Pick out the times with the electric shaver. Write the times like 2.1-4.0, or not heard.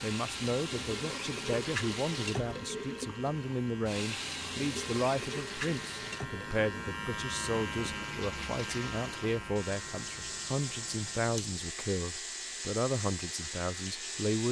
0.0-14.4.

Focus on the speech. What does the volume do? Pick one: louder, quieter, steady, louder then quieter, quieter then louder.
steady.